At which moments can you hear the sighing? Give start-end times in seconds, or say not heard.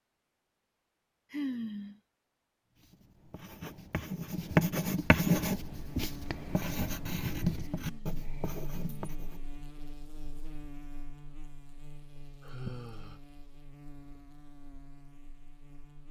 1.3-2.0, 7.6-9.1, 12.4-13.2.